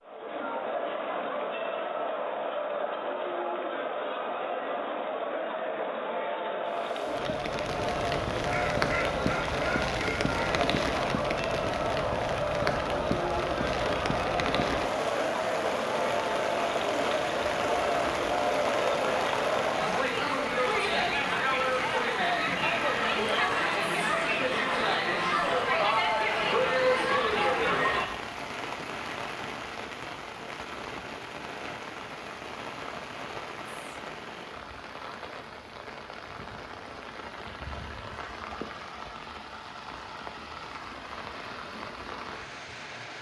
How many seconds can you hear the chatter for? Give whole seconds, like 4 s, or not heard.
28 s.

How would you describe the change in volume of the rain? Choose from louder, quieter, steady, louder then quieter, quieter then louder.
quieter.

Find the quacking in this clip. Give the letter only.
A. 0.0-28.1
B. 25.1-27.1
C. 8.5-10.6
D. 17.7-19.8
C.